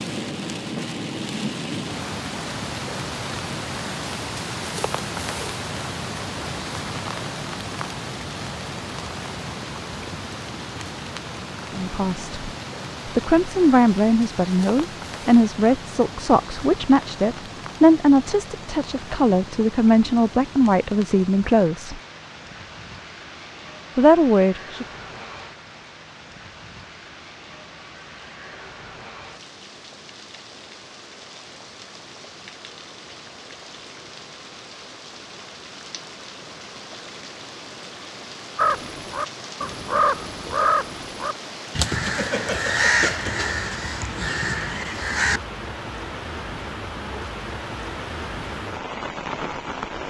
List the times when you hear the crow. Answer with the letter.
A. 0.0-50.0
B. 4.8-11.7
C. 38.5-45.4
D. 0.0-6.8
C.